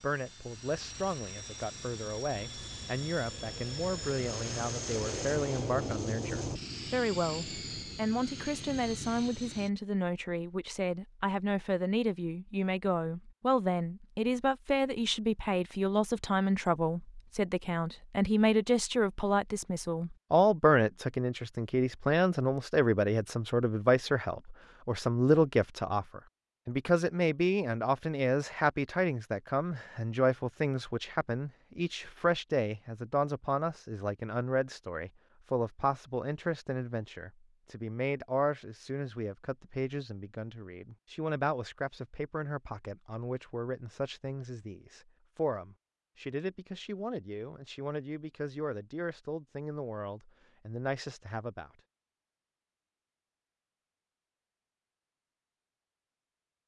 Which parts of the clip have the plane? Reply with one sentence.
You can hear the plane from 0.0 to 9.7 s.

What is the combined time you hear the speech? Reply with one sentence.
You can hear the speech for 52 seconds altogether.